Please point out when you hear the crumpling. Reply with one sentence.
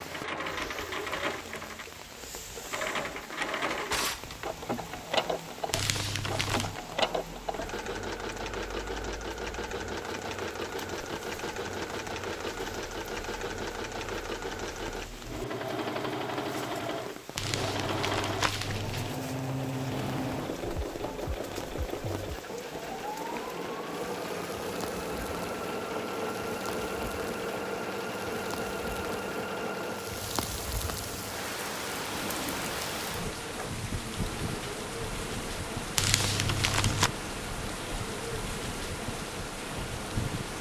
The crumpling can be heard from 5.7 to 6.8 s, from 17.4 to 19.1 s and from 36.0 to 37.1 s.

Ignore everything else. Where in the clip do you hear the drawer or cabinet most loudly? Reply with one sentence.
The volume of the drawer or cabinet peaks at 4 seconds.